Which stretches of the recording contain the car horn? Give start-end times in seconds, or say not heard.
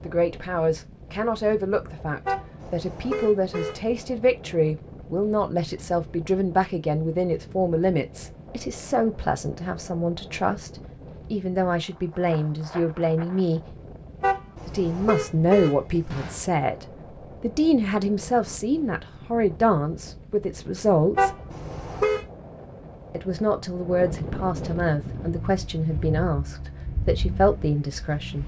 2.2-3.8, 14.2-16.4, 21.1-22.2.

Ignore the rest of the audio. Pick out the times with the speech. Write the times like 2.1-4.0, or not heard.
0.0-13.8, 14.7-16.8, 17.4-21.4, 23.1-28.4.